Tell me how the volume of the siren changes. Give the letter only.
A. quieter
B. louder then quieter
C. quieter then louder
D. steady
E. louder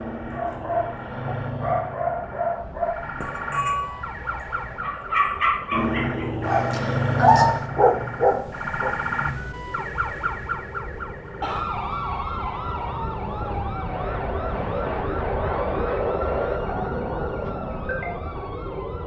B.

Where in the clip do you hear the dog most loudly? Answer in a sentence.
The loudest moment of the dog is at 7 seconds.